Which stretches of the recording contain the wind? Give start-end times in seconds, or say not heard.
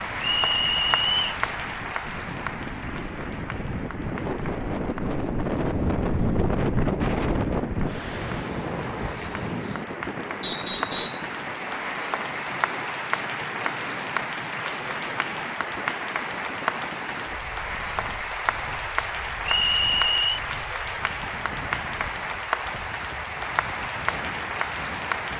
0.0-25.3.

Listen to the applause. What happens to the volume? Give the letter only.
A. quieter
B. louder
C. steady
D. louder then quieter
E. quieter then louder
E.